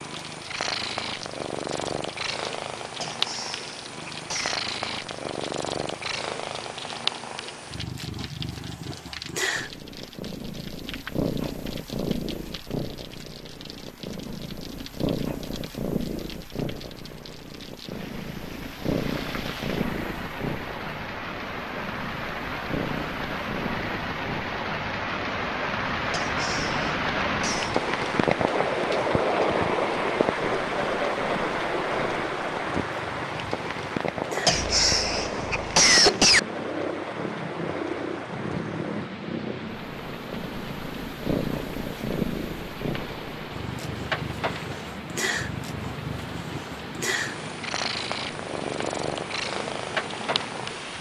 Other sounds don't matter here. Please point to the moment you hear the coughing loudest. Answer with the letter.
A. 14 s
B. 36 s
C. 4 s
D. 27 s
B.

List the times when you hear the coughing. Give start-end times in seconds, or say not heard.
3.0-4.6, 26.1-27.8, 34.5-36.4.